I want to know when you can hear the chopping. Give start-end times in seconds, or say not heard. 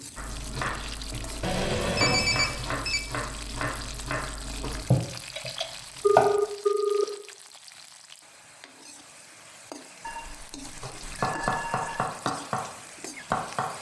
0.1-6.5, 10.8-13.7.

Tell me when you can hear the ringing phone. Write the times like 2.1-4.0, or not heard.
1.4-3.0, 5.3-7.0, 10.0-12.1.